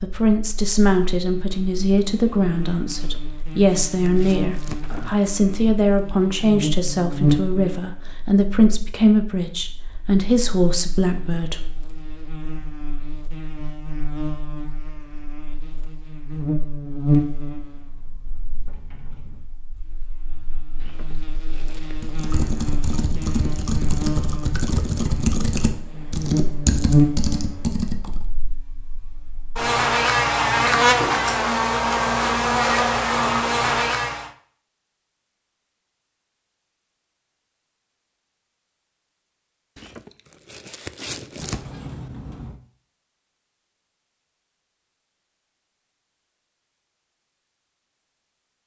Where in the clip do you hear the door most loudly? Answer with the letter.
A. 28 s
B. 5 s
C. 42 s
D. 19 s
C.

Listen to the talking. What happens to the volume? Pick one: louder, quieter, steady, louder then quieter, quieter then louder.
steady.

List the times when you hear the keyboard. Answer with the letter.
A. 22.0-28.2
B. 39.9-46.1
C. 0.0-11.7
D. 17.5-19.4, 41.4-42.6
A.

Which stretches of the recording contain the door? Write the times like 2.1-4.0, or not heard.
17.5-19.4, 41.4-42.6.